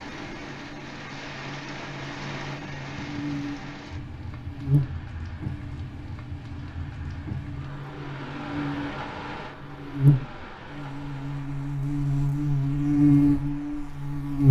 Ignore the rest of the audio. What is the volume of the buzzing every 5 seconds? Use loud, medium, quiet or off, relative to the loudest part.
quiet, quiet, loud.